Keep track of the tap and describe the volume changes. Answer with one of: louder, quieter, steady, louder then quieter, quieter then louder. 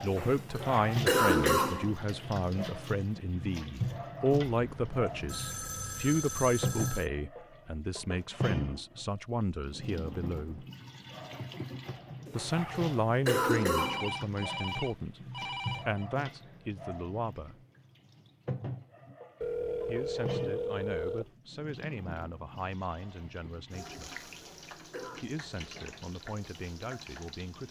quieter.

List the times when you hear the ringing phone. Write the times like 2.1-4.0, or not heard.
4.5-7.1, 13.5-16.1, 19.4-21.3.